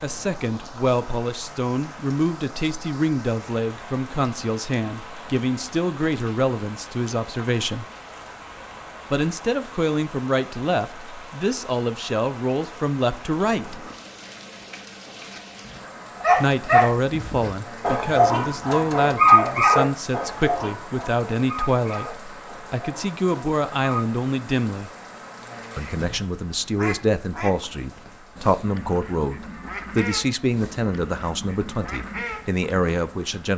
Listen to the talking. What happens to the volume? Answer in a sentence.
The loudness of the talking stays about the same.